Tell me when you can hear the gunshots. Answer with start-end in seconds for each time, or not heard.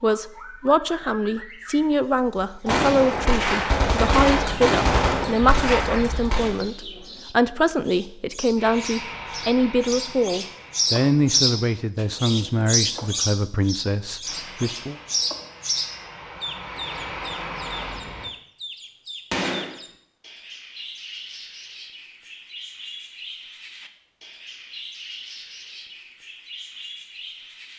2.6-6.5, 19.3-19.8.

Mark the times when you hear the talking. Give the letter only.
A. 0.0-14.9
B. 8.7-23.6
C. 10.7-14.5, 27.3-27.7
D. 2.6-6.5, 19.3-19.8
A.